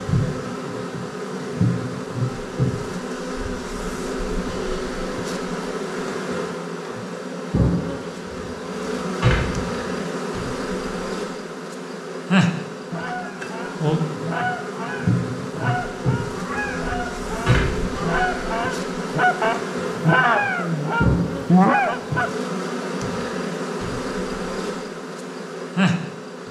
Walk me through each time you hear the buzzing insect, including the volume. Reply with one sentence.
The buzzing insect can be heard from 0.0 to 26.4 s, at a steady volume.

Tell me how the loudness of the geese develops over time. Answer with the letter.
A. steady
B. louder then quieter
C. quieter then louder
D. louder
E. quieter
D.